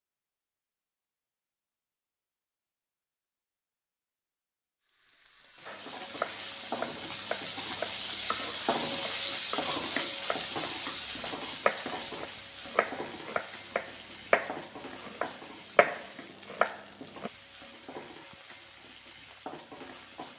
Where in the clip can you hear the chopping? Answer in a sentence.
The chopping can be heard from 5.7 to 17.3 s.